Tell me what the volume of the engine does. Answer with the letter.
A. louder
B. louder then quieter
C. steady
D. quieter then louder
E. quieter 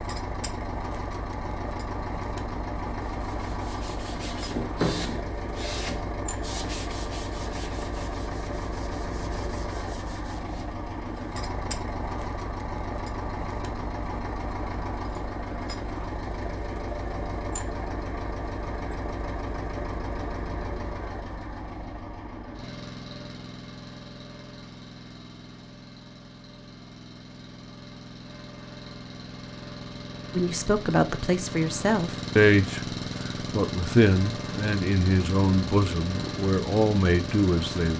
D.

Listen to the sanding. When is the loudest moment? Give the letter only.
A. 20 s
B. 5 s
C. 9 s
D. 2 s
B.